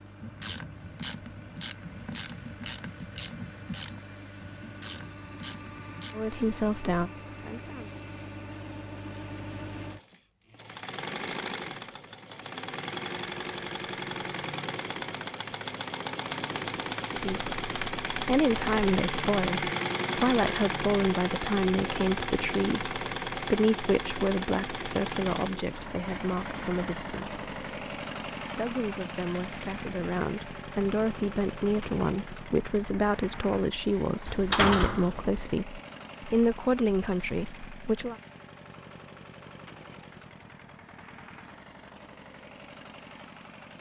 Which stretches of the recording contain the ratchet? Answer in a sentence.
The ratchet can be heard from 0.2 to 6.2 s.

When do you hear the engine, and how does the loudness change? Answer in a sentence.
You can hear the engine from 0.0 to 43.7 s, getting louder then quieter.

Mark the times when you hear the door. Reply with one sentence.
You can hear the door from 34.2 to 35.5 s.